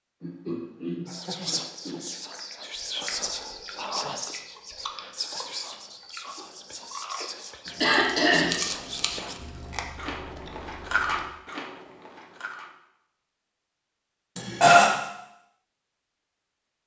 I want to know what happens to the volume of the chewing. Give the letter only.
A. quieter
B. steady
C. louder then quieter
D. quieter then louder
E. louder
E.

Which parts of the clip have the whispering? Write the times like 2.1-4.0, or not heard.
1.1-9.3.